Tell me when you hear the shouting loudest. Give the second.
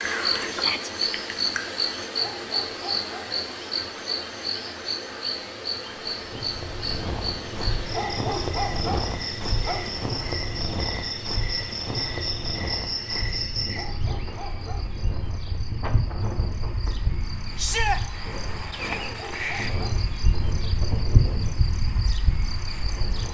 18 s.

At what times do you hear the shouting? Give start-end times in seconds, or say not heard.
0.5-0.9, 17.6-18.0.